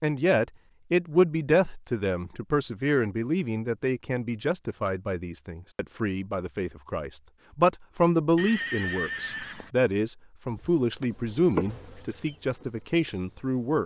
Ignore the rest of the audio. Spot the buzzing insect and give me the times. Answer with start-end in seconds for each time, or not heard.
10.4-13.8.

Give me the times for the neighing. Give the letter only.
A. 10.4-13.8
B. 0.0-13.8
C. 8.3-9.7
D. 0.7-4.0
C.